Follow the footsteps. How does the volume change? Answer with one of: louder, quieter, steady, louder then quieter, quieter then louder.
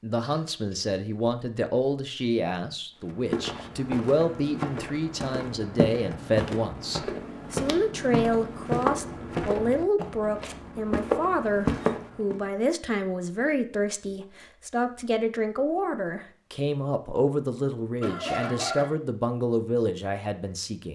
louder.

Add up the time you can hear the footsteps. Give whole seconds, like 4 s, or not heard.
9 s.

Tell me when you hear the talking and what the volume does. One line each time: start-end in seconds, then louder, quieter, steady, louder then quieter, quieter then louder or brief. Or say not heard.
0.0-20.9 steady.